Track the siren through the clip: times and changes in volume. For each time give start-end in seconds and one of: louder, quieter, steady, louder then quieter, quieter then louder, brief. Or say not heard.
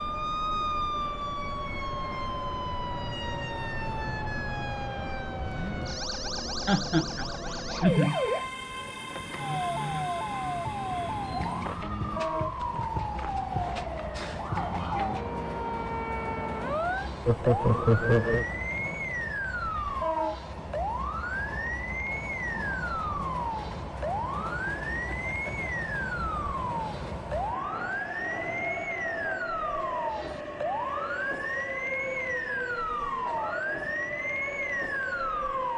0.0-35.7 steady.